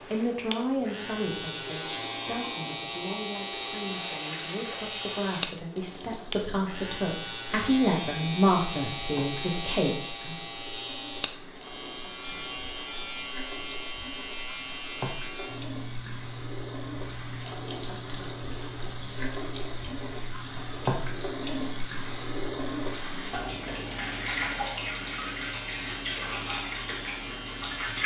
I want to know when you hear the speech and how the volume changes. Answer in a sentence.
The speech can be heard from 0.1 to 10.3 s, getting quieter then louder.